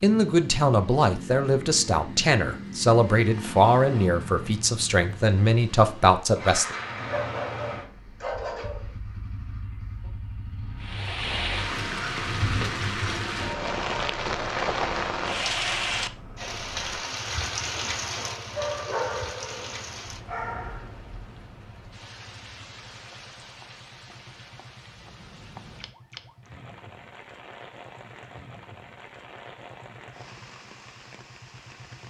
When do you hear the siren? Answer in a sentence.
The siren can't be heard in this clip.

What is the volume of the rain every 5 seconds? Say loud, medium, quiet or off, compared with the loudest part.
off, off, loud, loud, quiet, quiet, quiet.